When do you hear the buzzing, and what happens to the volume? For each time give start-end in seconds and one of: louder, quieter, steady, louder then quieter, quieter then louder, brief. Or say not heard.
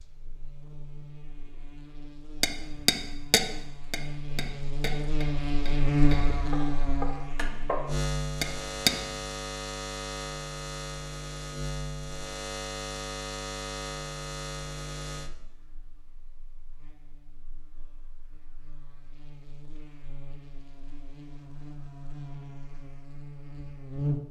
0.0-24.2 louder then quieter.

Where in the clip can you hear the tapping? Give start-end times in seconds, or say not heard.
2.4-8.9.